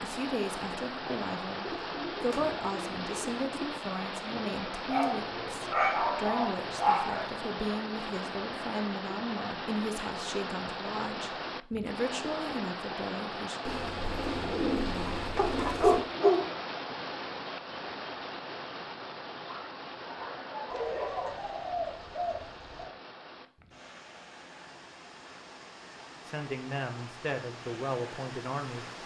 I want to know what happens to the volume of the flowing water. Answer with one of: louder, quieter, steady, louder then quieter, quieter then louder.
quieter.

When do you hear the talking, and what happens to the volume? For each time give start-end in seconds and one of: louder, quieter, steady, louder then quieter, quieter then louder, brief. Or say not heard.
0.0-13.6 steady
26.2-28.9 brief.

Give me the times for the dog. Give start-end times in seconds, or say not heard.
4.9-7.3, 15.3-16.5, 19.4-21.4.